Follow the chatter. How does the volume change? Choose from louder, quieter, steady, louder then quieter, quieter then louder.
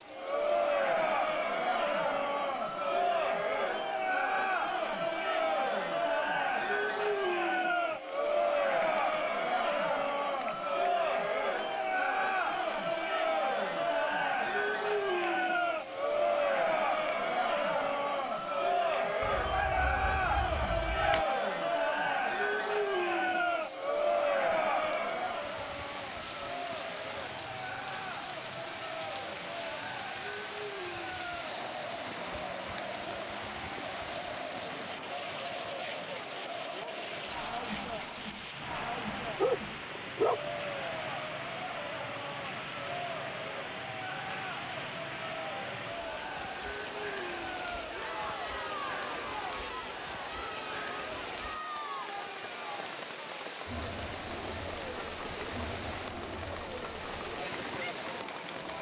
quieter.